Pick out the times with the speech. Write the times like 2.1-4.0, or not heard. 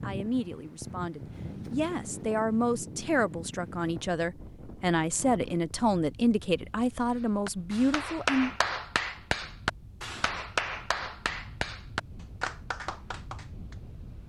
0.0-8.5.